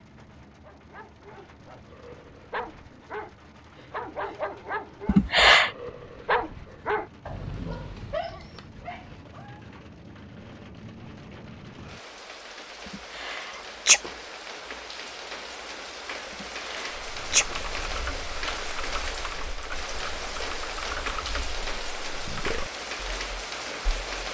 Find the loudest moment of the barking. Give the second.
6 s.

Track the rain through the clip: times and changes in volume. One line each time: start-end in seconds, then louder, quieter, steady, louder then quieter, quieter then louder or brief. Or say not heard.
0.0-24.3 louder.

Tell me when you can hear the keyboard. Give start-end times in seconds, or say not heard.
17.1-24.3.